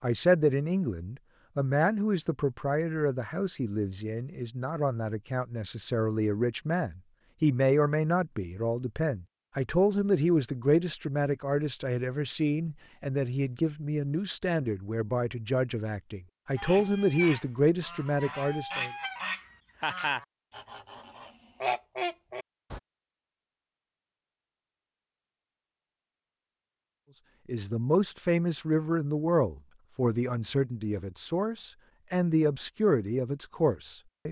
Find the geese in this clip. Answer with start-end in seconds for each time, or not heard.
16.6-22.8.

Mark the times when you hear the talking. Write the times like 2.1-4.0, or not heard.
0.0-18.9, 27.4-34.2.